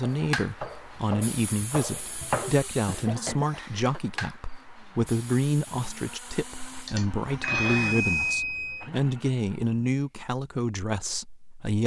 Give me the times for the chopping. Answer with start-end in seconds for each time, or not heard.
0.0-2.5.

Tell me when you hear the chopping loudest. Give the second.
2 s.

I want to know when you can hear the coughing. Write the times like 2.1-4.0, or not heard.
2.6-3.6, 6.8-8.1.